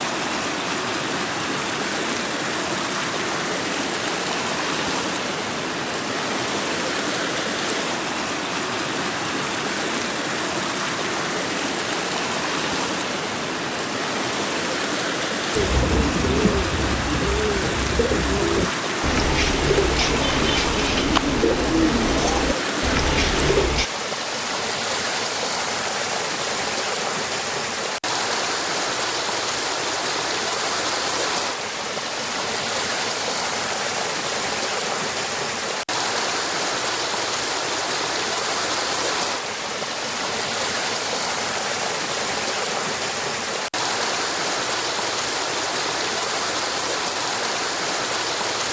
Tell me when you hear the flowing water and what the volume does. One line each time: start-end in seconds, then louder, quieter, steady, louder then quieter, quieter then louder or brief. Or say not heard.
0.0-48.6 steady.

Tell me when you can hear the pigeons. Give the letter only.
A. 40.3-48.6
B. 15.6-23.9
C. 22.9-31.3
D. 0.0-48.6
B.